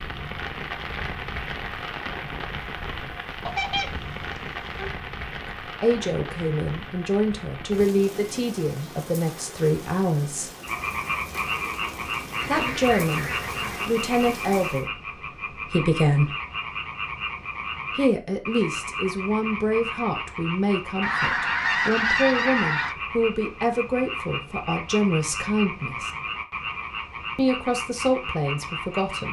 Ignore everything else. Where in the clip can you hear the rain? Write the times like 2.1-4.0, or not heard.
0.0-14.9.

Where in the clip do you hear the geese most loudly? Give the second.
22 s.